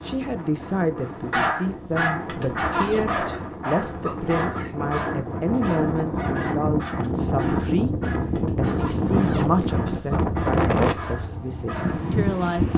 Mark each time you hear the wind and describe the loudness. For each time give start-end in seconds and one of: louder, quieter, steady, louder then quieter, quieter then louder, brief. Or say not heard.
0.0-12.7 louder.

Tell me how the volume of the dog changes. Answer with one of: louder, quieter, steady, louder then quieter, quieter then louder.
quieter.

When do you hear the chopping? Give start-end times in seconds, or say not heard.
not heard.